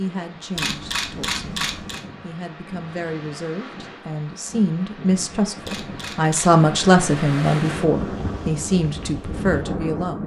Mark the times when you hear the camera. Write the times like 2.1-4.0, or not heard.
0.6-2.0, 5.6-6.6.